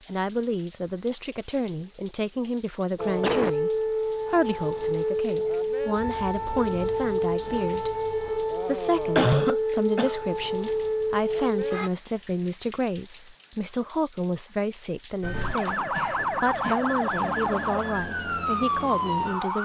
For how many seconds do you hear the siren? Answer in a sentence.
You can hear the siren for 13 seconds altogether.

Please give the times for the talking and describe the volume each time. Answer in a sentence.
You can hear the talking from 0.1 to 19.6 s, at a steady volume.